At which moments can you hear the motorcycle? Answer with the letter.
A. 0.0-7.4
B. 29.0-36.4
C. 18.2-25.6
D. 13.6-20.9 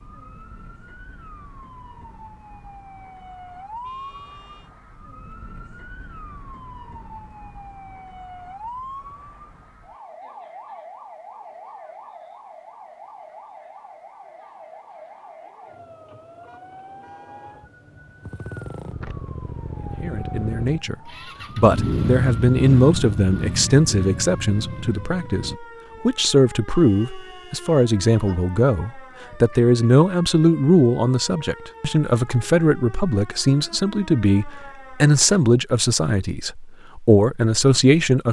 C.